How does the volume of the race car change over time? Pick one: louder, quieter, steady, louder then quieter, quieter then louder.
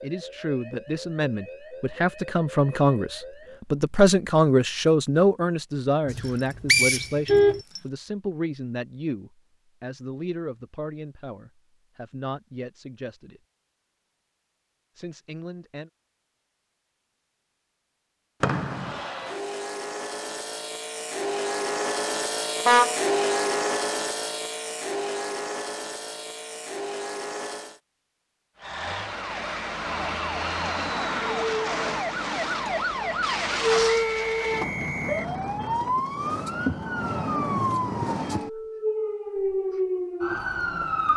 louder then quieter.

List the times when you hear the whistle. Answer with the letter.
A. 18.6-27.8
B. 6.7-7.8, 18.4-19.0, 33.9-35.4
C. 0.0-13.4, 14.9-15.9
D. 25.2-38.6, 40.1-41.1
B.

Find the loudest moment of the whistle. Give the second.
7 s.